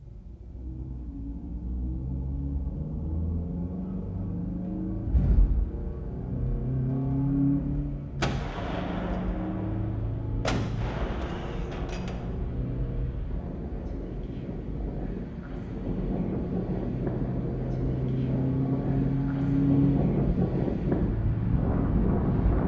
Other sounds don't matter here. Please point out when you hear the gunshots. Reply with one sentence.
You can hear the gunshots from 8.2 to 12.4 s.